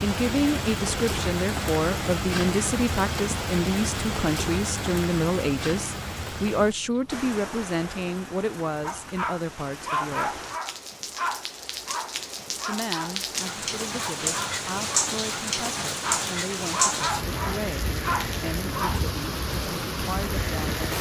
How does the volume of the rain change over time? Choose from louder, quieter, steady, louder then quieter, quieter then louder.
quieter then louder.